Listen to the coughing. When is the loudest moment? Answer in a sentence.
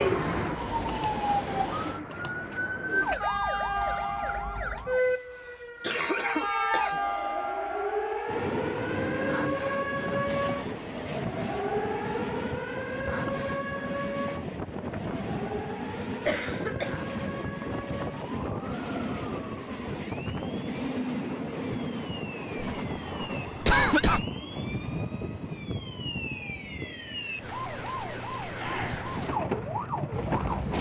The volume of the coughing peaks at 24 seconds.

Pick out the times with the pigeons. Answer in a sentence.
You can hear the pigeons from 0.0 to 3.2 s.